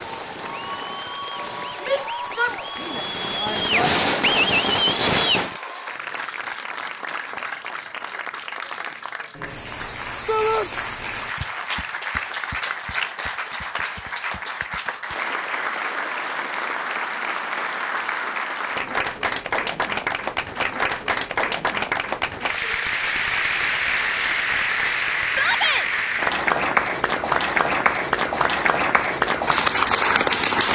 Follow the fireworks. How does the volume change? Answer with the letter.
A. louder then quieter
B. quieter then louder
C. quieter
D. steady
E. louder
E.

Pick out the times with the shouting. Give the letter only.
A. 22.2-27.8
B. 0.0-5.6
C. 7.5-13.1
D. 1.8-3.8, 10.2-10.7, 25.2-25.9
D.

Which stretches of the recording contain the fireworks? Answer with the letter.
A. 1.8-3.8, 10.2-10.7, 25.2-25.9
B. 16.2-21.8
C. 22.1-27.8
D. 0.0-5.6
D.